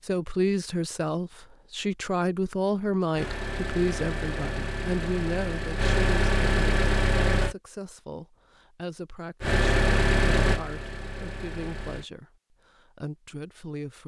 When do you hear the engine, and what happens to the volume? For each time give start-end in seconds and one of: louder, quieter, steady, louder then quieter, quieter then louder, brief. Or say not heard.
3.1-7.5 louder
9.4-12.1 brief.